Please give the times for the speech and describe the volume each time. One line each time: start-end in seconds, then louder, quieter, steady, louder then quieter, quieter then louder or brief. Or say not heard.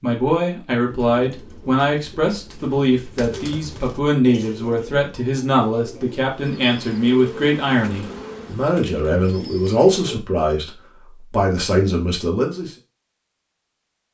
0.0-12.7 steady.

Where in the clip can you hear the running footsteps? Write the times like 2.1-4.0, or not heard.
not heard.